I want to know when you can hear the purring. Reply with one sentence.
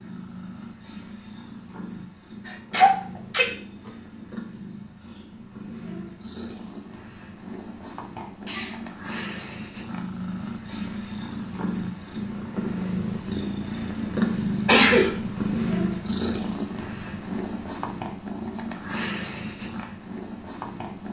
The purring can be heard from 0.0 to 21.0 s.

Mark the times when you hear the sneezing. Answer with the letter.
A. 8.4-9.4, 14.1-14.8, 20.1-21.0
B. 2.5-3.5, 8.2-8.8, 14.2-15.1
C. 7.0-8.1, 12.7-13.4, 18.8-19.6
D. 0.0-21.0
B.